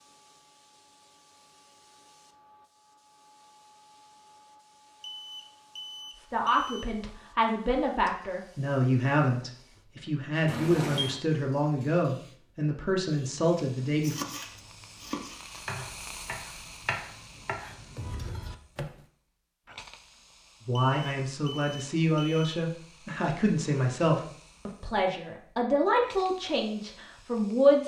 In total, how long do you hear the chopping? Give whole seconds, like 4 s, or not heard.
5 s.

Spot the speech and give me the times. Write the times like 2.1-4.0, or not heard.
6.2-14.2, 20.6-27.8.